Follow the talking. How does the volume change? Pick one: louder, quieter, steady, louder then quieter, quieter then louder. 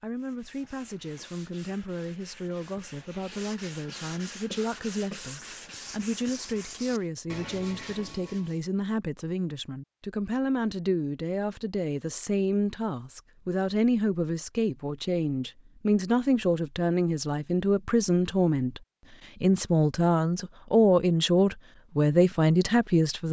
louder.